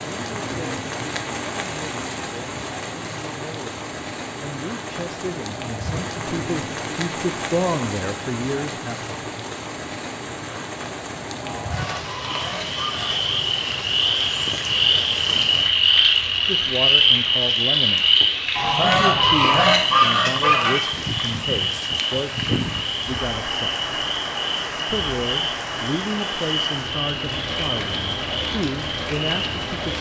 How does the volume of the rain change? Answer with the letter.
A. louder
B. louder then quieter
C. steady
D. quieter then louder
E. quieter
C.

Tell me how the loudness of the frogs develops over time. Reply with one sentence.
The volume of the frogs goes down.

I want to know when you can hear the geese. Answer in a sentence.
You can hear the geese from 11.4 to 13.2 s and from 18.6 to 20.8 s.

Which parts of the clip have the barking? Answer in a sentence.
You can't hear the barking here.